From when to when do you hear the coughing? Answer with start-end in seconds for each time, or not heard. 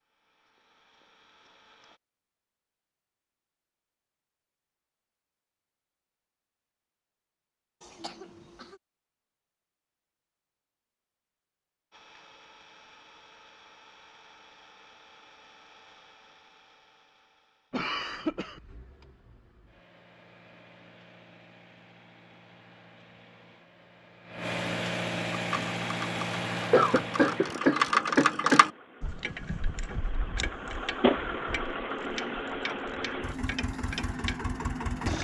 7.8-8.8, 17.7-18.6, 26.7-28.6.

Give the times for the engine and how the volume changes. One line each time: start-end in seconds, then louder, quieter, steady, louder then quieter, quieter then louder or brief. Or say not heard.
0.1-2.0 brief
11.9-35.1 louder.